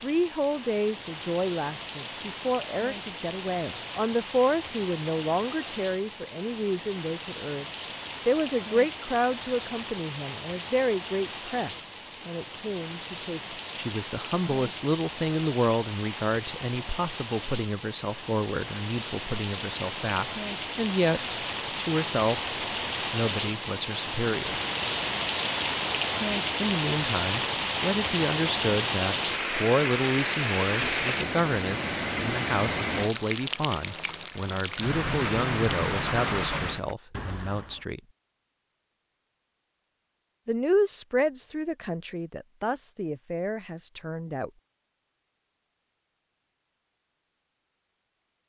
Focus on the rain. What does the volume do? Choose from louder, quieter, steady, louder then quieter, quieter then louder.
louder.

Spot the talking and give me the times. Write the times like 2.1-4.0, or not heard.
0.0-22.4, 23.1-24.6, 26.6-38.0, 40.5-44.5.